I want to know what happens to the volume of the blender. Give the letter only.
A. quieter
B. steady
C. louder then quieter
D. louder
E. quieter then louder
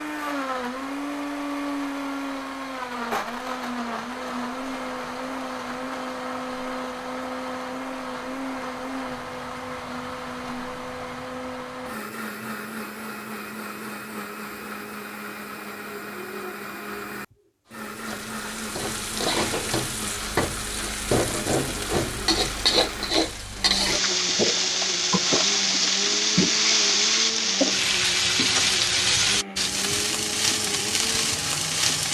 A.